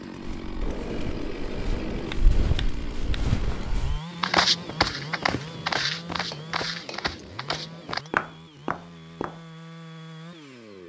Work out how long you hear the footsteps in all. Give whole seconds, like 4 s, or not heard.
9 s.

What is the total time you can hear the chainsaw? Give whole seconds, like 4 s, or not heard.
11 s.